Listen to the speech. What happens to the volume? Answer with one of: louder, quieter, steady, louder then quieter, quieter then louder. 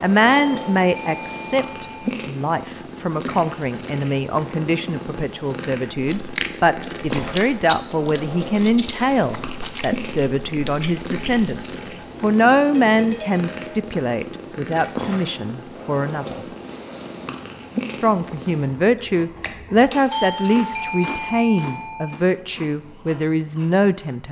steady.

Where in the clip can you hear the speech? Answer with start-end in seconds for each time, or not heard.
0.0-16.4, 18.0-24.2.